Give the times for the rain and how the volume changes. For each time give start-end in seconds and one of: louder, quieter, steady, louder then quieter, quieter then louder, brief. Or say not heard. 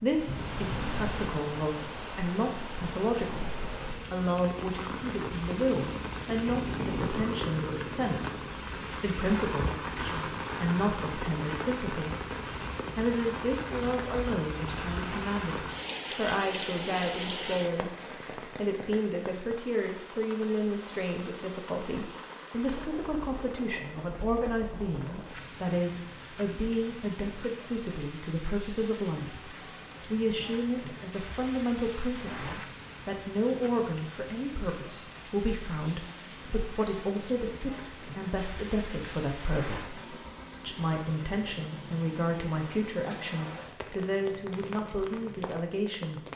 0.0-46.3 quieter.